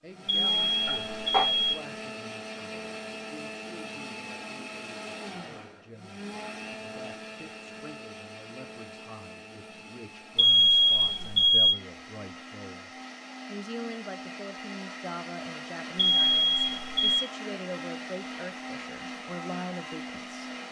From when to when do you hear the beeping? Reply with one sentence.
The beeping can be heard from 0.2 to 1.8 s, from 10.3 to 11.8 s and from 15.9 to 17.2 s.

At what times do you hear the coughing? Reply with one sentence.
You can hear the coughing from 0.8 to 1.4 s.